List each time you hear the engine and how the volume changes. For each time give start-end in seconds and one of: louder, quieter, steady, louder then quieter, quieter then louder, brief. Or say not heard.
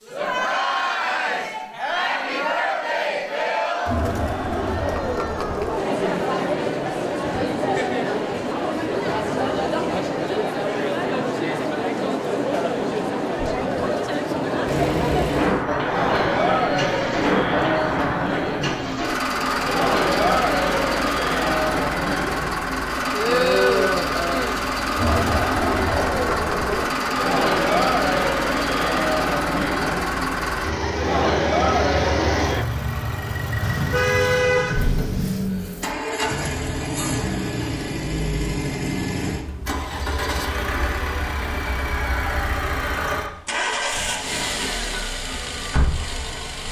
14.7-46.6 steady.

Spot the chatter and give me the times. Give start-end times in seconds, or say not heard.
0.1-32.6.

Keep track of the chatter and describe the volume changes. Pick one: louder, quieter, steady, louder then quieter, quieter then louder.
steady.